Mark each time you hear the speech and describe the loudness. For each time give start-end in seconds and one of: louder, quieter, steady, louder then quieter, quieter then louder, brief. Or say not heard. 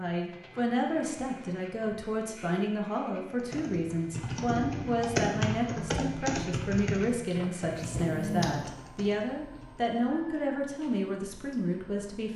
0.0-12.3 steady.